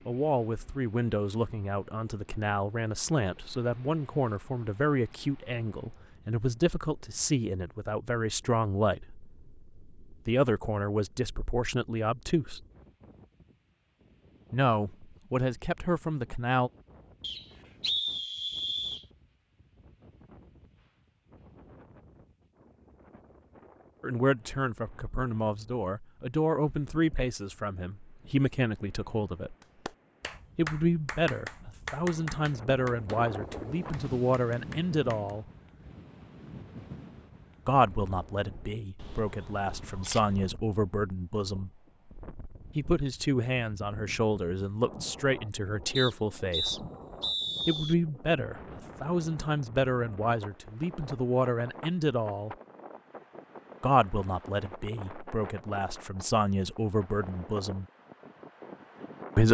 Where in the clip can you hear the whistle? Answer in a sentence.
The whistle can be heard from 17.2 to 19.1 s and from 46.0 to 48.0 s.